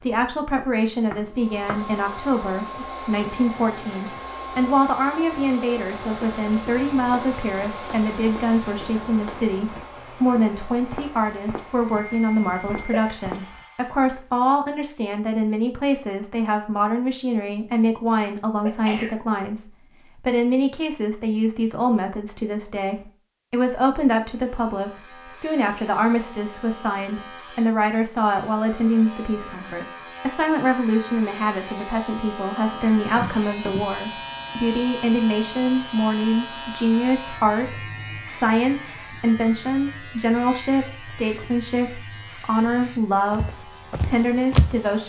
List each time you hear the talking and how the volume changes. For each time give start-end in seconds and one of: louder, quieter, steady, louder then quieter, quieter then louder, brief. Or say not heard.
0.0-45.0 steady.